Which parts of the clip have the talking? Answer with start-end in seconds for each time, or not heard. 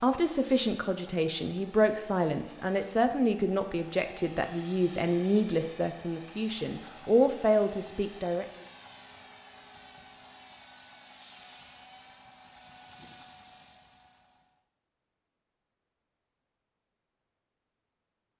0.0-8.4.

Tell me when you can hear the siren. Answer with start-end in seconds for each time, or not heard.
not heard.